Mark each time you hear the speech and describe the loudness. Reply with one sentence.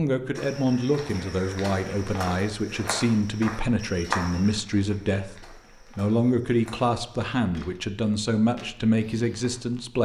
The speech can be heard from 0.0 to 10.0 s, at a steady volume.